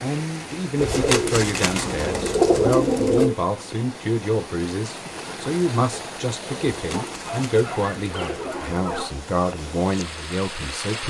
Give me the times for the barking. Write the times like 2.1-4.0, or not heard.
6.9-9.2.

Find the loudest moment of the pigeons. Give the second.
3 s.